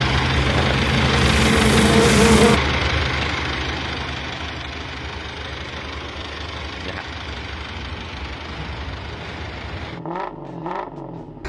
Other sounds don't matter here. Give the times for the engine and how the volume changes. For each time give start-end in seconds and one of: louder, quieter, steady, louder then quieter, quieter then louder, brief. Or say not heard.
0.0-11.4 quieter.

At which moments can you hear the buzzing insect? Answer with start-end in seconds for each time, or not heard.
0.1-2.6.